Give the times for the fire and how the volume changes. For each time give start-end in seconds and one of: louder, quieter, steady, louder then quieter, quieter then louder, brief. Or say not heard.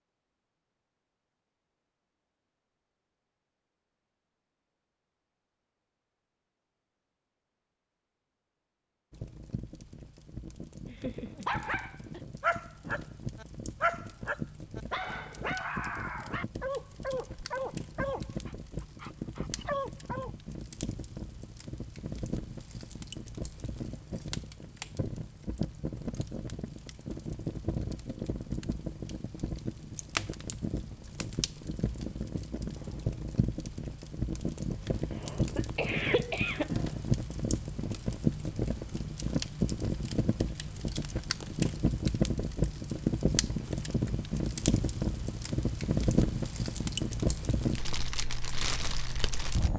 9.1-49.7 louder.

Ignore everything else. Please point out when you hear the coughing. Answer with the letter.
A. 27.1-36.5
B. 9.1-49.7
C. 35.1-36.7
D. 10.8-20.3
C.